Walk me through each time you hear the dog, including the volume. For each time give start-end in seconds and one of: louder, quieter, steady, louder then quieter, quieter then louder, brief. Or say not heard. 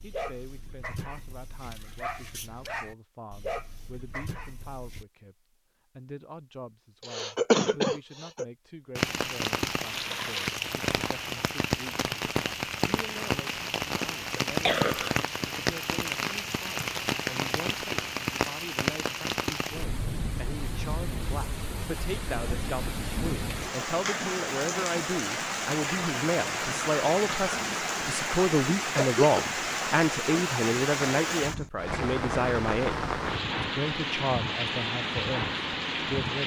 0.0-5.0 louder then quieter.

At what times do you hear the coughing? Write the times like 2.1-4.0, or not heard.
7.1-8.4, 14.3-15.2, 28.6-29.2.